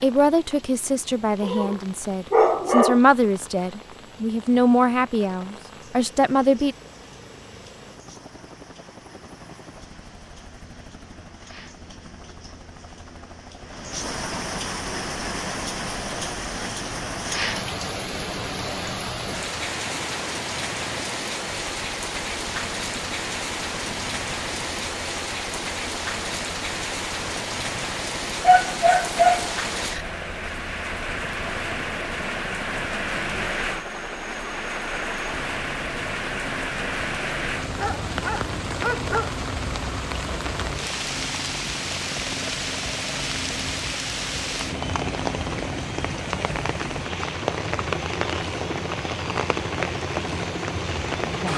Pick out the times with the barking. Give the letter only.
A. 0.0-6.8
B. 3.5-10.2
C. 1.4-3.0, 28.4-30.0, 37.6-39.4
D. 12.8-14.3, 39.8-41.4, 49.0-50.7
C.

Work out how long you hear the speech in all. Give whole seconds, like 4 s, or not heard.
7 s.